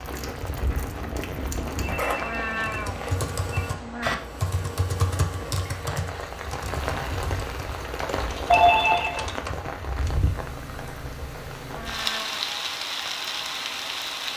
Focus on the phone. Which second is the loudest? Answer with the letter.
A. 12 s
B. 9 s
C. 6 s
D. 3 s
B.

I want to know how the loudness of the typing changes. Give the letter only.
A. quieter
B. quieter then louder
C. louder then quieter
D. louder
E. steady
A.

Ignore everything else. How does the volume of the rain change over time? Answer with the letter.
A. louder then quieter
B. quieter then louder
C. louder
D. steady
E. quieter
B.